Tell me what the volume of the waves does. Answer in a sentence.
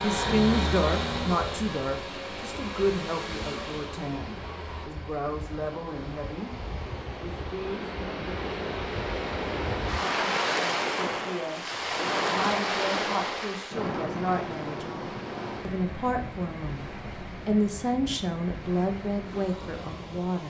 The loudness of the waves goes up, then down.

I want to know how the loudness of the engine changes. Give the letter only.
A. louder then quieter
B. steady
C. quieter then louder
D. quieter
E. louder
D.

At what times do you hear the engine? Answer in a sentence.
You can hear the engine from 0.0 to 4.9 s.